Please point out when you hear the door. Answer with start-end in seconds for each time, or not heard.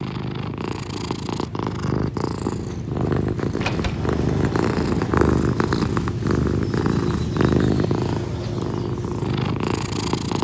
3.5-5.2.